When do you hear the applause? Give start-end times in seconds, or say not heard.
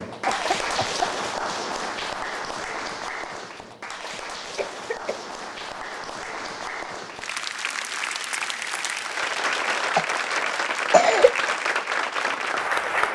0.0-13.1.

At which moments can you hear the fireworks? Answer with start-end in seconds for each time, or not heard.
not heard.